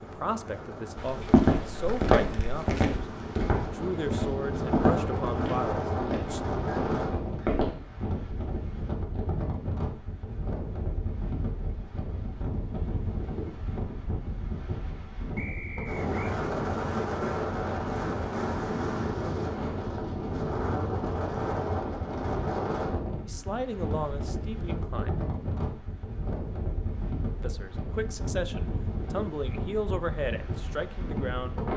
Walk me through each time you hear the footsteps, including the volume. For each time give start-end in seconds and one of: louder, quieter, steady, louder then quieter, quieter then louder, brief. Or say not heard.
0.9-7.8 quieter.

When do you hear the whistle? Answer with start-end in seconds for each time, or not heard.
15.3-16.4.